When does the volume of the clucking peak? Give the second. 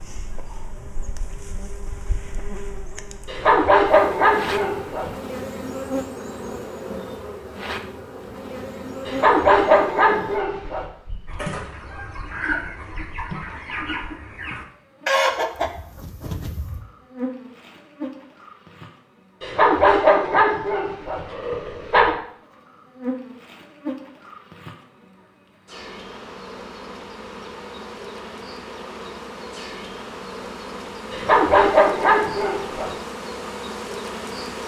15 s.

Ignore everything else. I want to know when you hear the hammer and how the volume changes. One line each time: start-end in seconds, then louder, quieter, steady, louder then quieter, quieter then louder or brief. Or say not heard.
not heard.